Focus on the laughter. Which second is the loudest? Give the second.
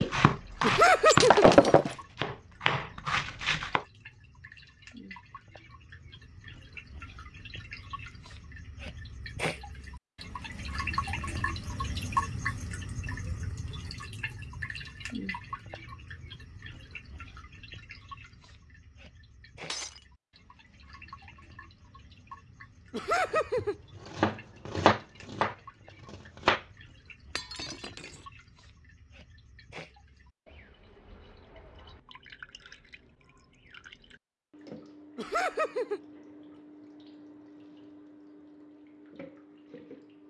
1 s.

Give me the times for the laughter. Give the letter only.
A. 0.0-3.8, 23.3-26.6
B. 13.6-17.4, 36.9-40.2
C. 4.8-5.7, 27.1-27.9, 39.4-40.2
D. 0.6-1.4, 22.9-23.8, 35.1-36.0
D.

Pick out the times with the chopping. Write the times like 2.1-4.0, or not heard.
0.0-3.8, 23.3-26.6.